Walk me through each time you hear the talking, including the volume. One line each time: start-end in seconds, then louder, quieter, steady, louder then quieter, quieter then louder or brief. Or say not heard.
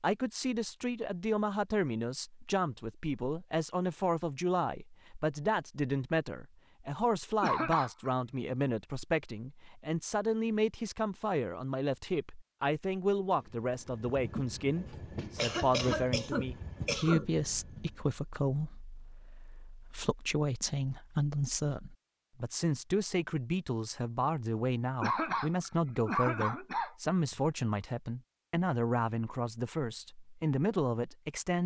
0.0-31.6 steady.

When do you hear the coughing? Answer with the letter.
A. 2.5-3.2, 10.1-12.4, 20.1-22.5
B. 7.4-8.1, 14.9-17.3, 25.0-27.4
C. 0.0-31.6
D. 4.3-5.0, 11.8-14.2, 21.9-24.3
B.